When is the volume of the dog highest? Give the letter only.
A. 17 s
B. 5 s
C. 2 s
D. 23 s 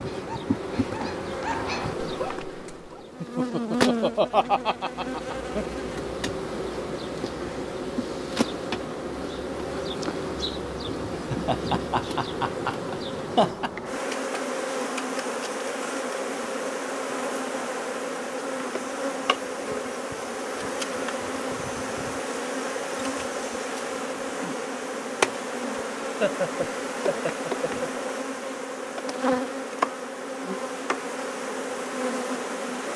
C.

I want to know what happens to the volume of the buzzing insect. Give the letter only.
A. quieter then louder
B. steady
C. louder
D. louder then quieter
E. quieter
B.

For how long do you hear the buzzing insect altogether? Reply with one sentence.
The buzzing insect can be heard for 33 seconds in total.